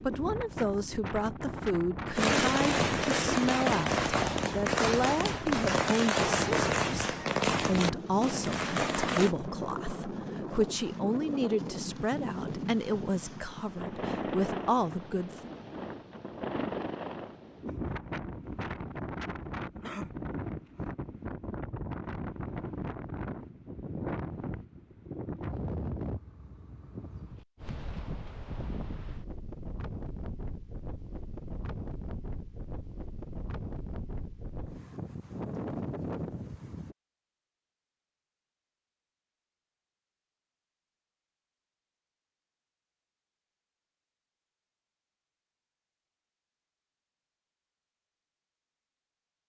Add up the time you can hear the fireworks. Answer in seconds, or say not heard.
7 s.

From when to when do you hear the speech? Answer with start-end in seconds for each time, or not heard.
0.0-15.5.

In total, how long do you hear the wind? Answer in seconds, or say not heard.
37 s.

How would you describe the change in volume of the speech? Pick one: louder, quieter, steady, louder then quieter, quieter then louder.
steady.